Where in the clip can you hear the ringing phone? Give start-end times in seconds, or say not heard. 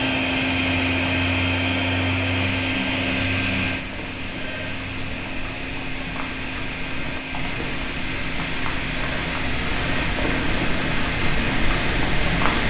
0.9-2.4, 4.4-5.2, 8.9-11.2.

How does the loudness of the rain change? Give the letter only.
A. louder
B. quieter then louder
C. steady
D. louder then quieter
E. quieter
A.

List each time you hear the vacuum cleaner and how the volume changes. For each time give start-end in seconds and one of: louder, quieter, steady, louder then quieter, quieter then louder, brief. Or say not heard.
0.0-12.6 quieter.